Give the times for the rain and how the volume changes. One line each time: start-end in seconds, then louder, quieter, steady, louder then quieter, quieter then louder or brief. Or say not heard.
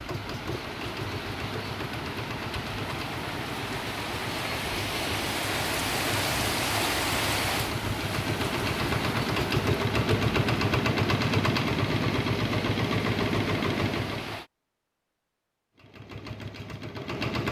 0.0-14.5 louder then quieter.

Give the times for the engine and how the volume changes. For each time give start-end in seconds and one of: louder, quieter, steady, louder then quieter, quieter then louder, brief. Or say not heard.
0.0-14.4 louder
15.8-17.4 brief.